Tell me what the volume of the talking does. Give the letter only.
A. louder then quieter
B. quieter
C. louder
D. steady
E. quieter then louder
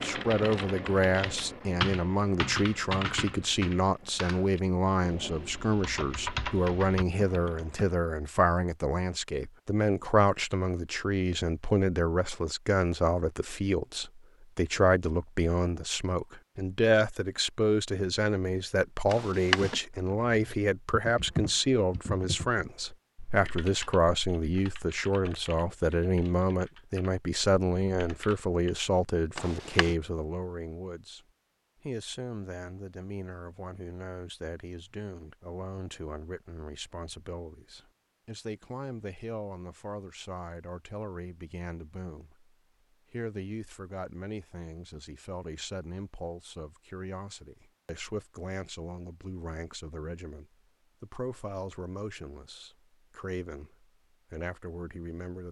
B.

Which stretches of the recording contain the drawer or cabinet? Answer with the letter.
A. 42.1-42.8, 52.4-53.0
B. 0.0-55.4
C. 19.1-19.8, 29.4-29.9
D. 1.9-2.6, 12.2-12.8
C.